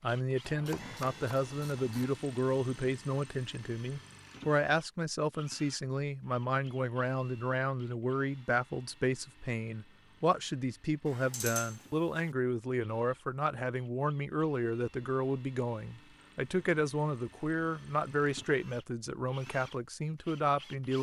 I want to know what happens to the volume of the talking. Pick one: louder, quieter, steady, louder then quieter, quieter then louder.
steady.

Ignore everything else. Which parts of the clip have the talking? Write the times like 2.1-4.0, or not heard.
0.0-20.9.